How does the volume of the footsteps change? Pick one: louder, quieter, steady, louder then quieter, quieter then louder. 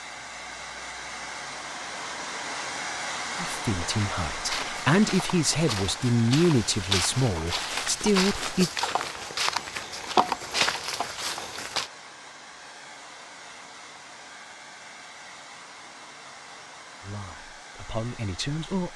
louder.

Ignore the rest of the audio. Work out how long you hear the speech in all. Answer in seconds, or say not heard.
7 s.